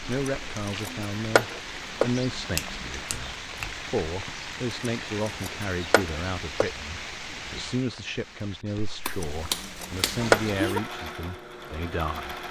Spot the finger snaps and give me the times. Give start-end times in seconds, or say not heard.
2.5-3.8, 9.1-10.8.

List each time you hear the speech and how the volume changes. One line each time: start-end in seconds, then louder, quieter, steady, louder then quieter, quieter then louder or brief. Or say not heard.
0.1-12.4 steady.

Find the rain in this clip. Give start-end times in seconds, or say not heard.
0.0-10.8.